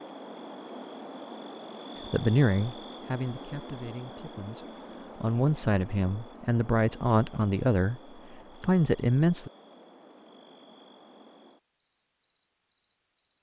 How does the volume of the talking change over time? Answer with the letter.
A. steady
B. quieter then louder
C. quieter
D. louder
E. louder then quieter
B.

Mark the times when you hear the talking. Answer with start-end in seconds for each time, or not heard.
2.0-9.5.